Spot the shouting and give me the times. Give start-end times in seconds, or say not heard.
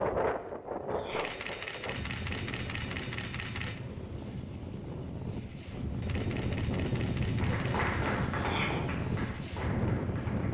0.9-1.4, 8.3-8.8.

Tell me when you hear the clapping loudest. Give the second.
8 s.